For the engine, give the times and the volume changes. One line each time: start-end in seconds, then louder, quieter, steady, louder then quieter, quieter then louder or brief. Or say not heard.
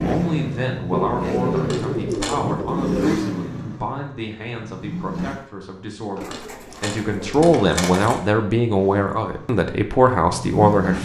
0.0-5.5 quieter
8.7-11.0 brief.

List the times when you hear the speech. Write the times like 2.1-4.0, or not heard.
0.0-11.0.